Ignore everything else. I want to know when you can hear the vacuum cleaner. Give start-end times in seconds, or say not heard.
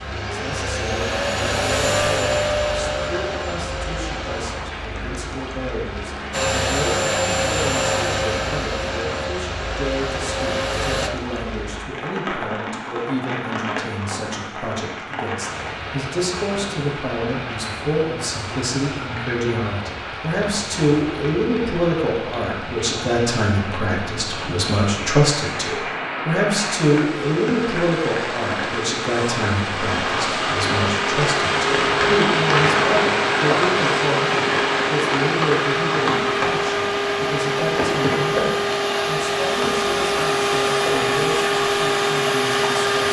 0.0-4.5, 6.3-11.1, 30.1-43.0.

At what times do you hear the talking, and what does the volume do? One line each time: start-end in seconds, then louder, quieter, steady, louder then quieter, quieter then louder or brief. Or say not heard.
0.2-43.0 louder then quieter.